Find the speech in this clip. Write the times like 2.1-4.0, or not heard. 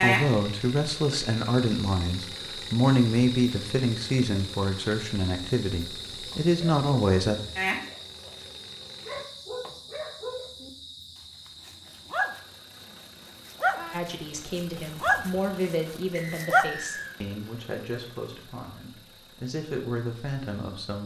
0.0-7.3, 13.9-21.0.